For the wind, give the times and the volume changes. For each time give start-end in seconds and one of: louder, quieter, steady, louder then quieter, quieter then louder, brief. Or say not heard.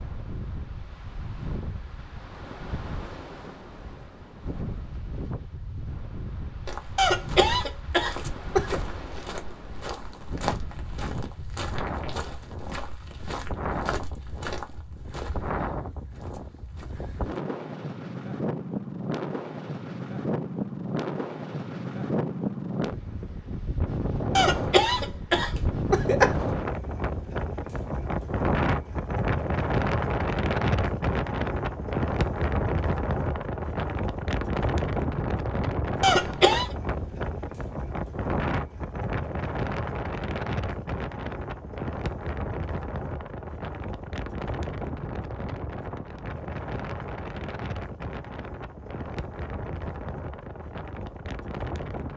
0.0-52.1 louder then quieter.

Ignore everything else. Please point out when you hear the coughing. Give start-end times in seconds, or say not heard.
7.0-8.8, 24.4-26.4, 36.0-36.8.